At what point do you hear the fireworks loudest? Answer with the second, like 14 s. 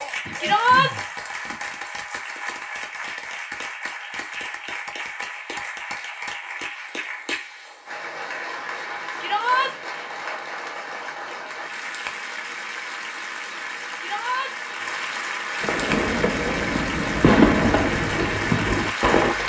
17 s.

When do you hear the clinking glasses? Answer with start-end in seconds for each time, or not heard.
not heard.